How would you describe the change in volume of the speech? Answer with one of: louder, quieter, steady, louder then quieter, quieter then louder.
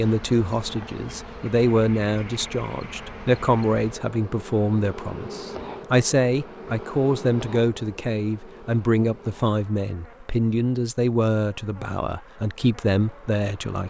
steady.